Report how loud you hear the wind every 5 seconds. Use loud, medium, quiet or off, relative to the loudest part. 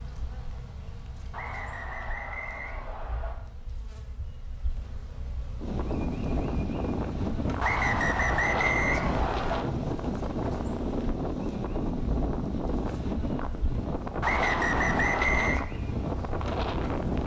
off, loud, loud, loud.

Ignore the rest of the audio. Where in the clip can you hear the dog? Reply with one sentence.
The dog can't be heard in this clip.